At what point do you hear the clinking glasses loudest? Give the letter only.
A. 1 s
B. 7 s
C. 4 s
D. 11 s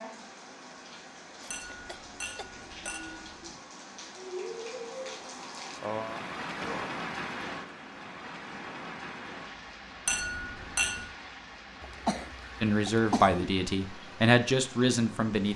D.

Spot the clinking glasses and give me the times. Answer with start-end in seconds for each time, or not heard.
1.5-3.6, 10.1-11.1.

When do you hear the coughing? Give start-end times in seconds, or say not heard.
1.4-3.1, 5.8-6.9, 11.8-13.5.